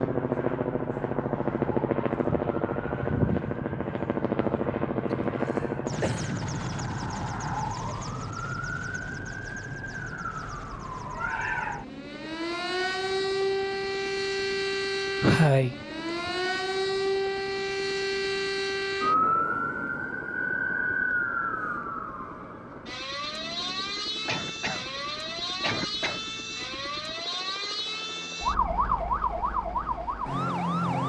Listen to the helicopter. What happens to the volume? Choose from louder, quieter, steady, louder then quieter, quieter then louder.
quieter.